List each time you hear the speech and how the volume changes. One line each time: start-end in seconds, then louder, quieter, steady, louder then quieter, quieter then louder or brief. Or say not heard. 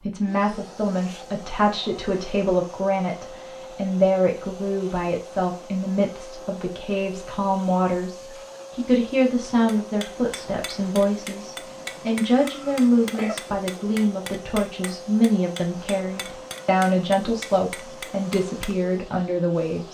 0.0-19.9 steady.